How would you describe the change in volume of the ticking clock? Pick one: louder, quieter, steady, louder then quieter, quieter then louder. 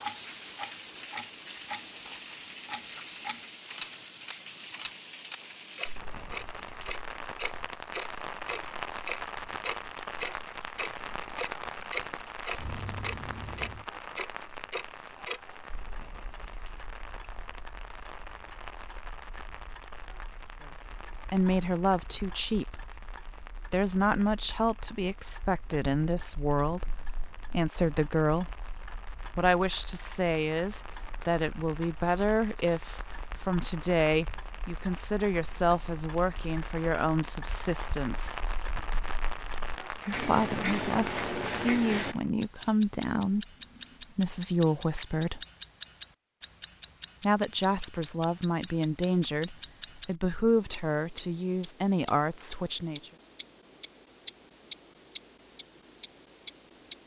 quieter then louder.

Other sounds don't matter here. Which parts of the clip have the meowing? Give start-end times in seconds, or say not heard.
12.6-13.8.